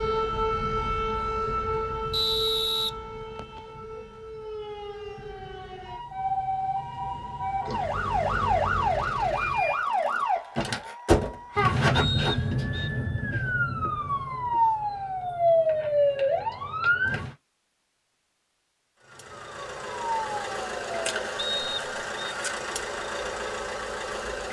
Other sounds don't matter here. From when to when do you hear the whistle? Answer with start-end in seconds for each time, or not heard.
2.1-3.6, 11.9-12.9, 21.4-22.4.